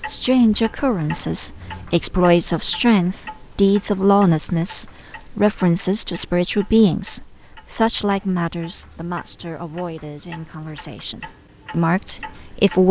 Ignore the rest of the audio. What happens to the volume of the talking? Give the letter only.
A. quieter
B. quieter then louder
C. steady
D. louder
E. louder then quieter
A.